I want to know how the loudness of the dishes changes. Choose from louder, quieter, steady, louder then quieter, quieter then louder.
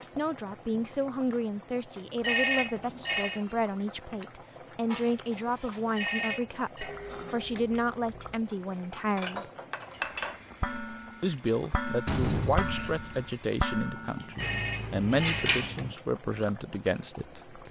louder.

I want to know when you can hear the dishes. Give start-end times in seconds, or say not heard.
4.4-15.9.